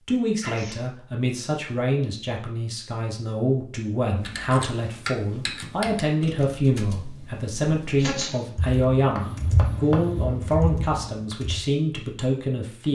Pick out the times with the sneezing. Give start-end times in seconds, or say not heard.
0.4-0.8, 8.0-8.4.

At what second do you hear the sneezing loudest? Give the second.
8 s.